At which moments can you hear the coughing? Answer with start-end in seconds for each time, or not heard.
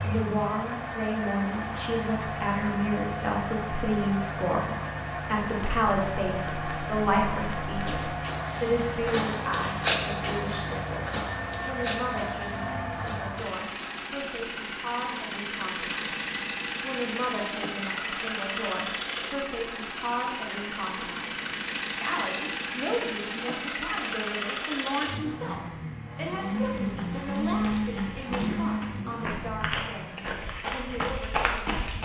not heard.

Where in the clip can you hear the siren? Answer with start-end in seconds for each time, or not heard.
not heard.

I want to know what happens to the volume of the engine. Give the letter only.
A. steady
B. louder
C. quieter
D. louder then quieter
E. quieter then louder
A.